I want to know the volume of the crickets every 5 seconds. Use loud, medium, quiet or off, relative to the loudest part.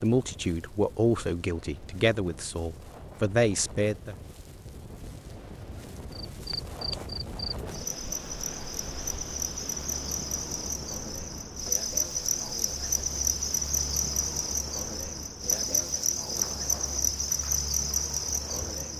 off, medium, loud, loud.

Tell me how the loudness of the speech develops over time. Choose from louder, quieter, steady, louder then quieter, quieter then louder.
quieter then louder.